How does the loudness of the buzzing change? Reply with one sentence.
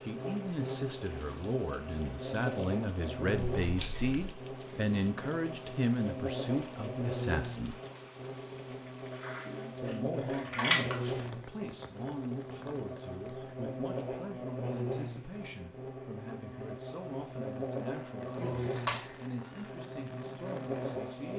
The loudness of the buzzing stays about the same.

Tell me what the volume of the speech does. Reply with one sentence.
The loudness of the speech goes down.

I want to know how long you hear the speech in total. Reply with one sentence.
You can hear the speech for 19 seconds altogether.